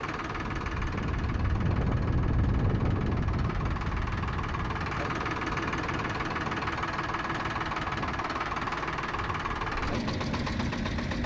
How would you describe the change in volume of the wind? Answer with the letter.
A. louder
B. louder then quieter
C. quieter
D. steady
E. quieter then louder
C.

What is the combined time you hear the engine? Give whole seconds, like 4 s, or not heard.
11 s.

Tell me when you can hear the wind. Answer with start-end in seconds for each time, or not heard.
0.0-11.2.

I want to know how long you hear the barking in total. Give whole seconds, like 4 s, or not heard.
not heard.